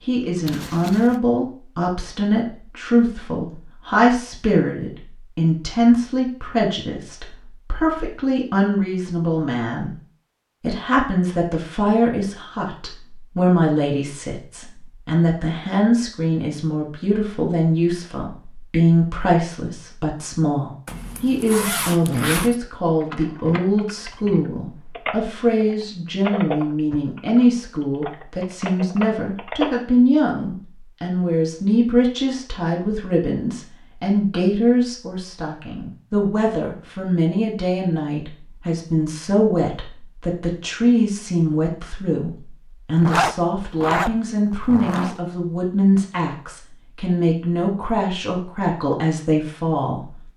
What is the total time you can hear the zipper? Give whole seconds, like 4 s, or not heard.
5 s.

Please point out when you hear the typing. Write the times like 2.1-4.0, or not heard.
23.0-29.7.